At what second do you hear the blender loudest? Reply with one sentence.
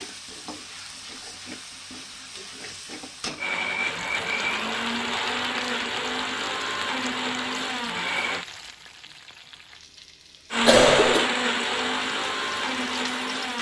The loudest moment of the blender is at 11 seconds.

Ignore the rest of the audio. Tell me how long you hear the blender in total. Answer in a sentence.
You can hear the blender for 8 seconds altogether.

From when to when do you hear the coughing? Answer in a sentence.
You can hear the coughing from 10.7 to 11.3 s.